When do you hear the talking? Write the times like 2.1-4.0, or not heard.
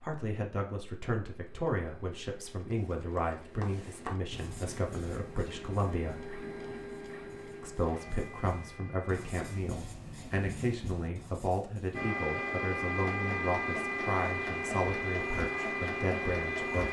0.0-6.3, 7.6-16.8.